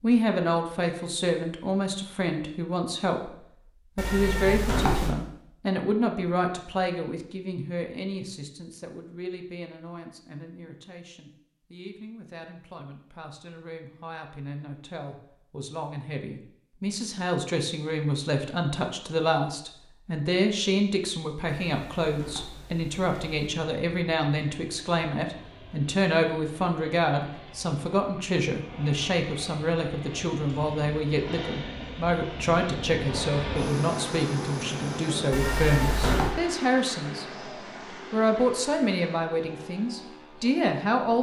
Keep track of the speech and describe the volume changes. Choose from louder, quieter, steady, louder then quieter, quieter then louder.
quieter then louder.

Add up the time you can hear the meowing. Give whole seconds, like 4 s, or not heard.
4 s.